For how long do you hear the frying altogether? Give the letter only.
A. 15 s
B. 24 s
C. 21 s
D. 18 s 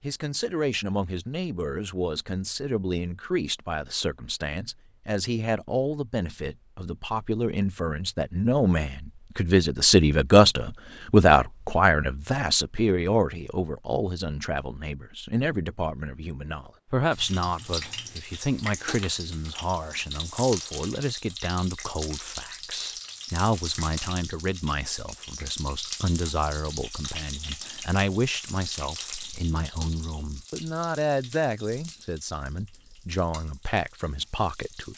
D.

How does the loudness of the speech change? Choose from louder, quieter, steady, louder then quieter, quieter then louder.
louder then quieter.